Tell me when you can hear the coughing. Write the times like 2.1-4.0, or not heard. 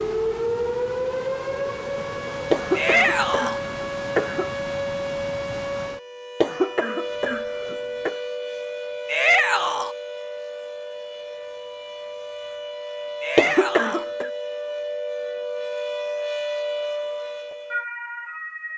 2.5-4.5, 6.4-8.2, 13.3-14.3.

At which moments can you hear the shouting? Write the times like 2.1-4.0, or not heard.
2.8-3.6, 9.1-9.9, 13.2-14.1.